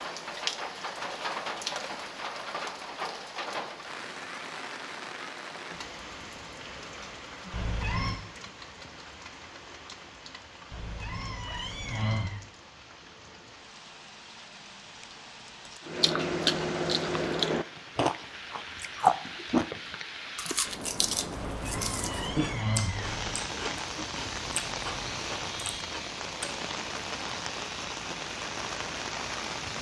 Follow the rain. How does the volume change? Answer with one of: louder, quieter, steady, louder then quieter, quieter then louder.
quieter then louder.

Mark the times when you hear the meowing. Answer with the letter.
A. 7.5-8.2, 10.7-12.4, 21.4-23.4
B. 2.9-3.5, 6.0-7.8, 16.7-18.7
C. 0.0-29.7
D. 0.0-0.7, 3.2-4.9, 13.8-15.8
A.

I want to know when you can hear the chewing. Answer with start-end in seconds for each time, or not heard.
15.8-26.6.